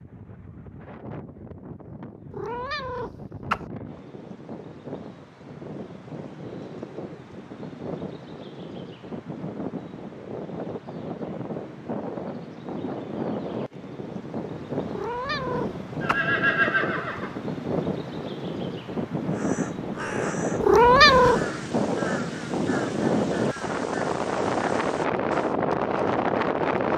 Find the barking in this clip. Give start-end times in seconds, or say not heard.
not heard.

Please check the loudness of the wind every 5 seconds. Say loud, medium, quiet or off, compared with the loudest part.
quiet, quiet, medium, medium, loud, loud.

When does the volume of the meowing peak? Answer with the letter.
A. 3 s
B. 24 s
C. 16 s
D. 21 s
D.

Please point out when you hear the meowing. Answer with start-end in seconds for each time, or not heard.
2.3-3.6, 14.9-16.2, 20.6-21.4.